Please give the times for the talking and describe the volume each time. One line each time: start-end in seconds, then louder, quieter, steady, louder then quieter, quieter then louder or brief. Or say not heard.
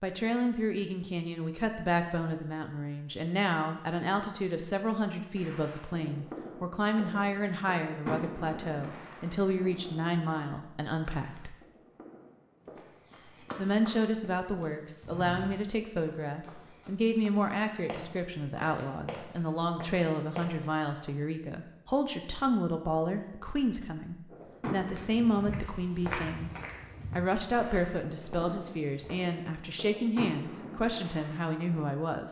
0.0-11.6 steady
13.6-26.5 steady
27.1-32.2 steady.